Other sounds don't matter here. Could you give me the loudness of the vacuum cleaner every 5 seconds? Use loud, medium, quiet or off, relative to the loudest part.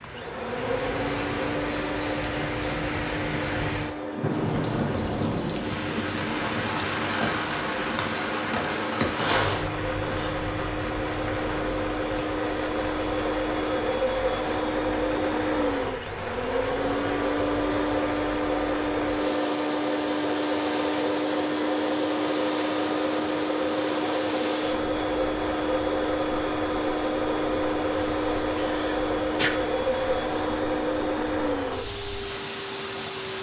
medium, medium, loud, loud, loud, loud, loud.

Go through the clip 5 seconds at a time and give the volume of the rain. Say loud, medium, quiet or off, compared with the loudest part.
loud, loud, medium, medium, medium, quiet, medium.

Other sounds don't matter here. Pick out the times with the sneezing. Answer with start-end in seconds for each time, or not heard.
9.2-10.3, 28.4-29.5.